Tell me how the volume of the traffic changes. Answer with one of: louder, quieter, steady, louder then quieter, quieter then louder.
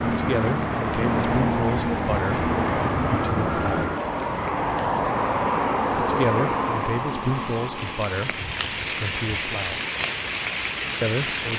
quieter.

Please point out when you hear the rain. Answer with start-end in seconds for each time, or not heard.
0.0-11.5.